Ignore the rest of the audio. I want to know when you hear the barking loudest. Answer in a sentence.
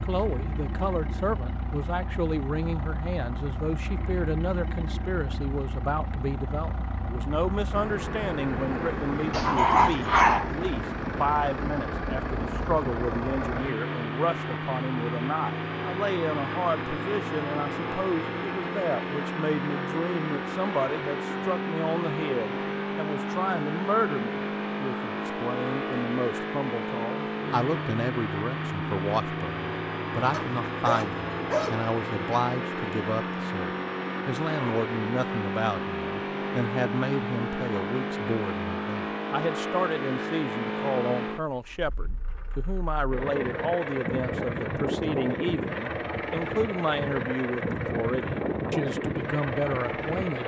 The loudest moment of the barking is at 10 seconds.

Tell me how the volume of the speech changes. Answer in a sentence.
The volume of the speech stays about the same.